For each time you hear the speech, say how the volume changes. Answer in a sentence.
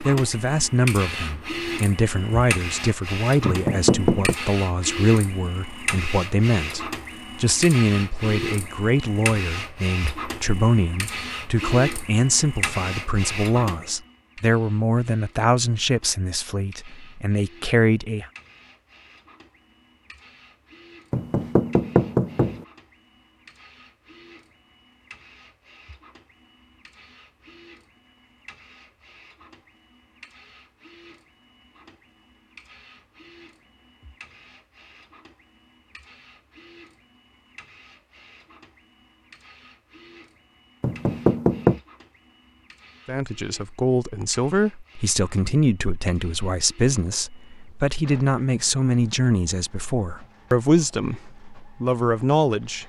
The speech can be heard from 0.0 to 18.2 s, at a steady volume; and from 43.0 to 52.8 s, at a steady volume.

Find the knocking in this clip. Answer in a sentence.
The knocking can be heard from 3.5 to 4.3 s, from 21.1 to 22.6 s and from 40.8 to 41.8 s.